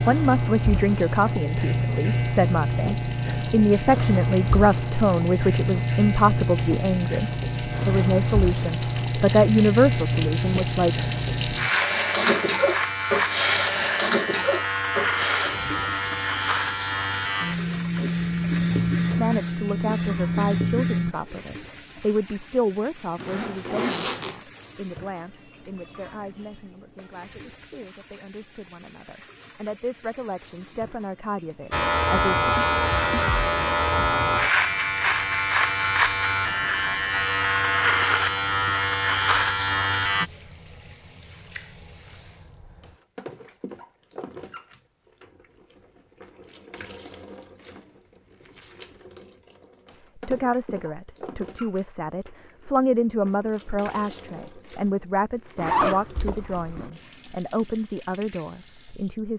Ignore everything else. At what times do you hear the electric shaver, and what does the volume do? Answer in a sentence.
The electric shaver can be heard from 0.0 to 21.1 s, at a steady volume; and from 31.7 to 40.3 s, at a steady volume.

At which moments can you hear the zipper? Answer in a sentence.
The zipper can be heard from 23.1 to 24.4 s and from 55.5 to 56.9 s.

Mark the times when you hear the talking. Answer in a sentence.
You can hear the talking from 0.0 to 11.1 s, from 19.1 to 32.5 s and from 50.1 to 59.3 s.